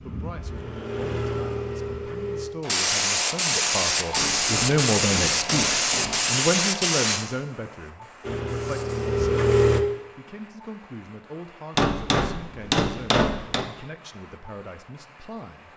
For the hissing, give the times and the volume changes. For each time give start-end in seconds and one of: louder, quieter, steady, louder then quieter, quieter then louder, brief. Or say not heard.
2.6-15.7 quieter.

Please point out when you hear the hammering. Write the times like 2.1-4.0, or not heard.
4.2-6.3, 11.8-13.7.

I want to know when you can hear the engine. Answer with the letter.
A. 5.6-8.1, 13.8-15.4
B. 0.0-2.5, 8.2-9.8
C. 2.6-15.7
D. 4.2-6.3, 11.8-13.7
B.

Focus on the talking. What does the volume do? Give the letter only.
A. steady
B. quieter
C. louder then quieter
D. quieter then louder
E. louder
C.